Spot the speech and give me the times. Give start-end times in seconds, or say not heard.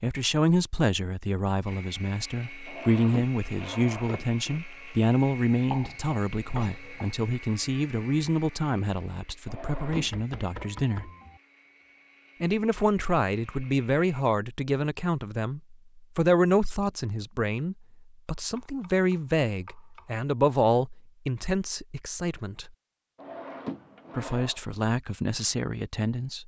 0.0-11.1, 12.4-22.7, 24.1-26.4.